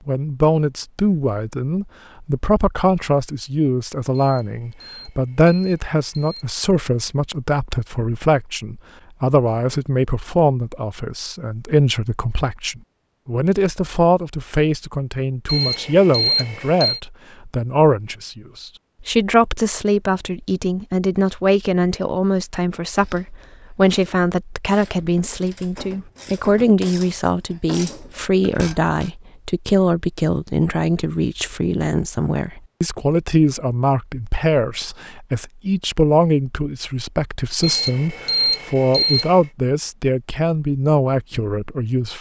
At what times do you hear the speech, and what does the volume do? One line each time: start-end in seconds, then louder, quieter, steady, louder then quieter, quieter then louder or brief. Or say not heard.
0.1-42.1 steady.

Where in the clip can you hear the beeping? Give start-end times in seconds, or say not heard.
4.2-6.5, 15.4-17.0, 37.6-39.5.